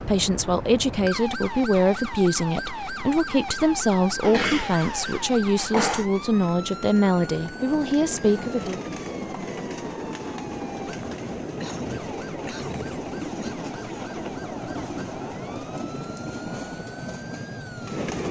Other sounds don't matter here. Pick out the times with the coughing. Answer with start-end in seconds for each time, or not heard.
4.2-6.0, 11.4-13.6.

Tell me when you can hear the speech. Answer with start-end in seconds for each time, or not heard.
0.0-8.8.